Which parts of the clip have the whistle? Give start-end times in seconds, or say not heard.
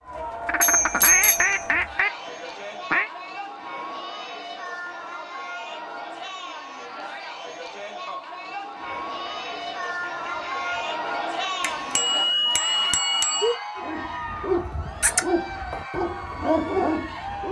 not heard.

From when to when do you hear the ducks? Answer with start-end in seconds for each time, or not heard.
0.5-3.1, 8.8-11.2.